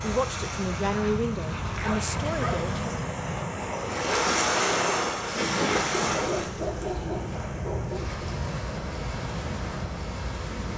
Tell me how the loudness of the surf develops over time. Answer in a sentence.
The volume of the surf goes up, then down.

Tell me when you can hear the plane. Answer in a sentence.
The plane can be heard from 0.0 to 10.7 s.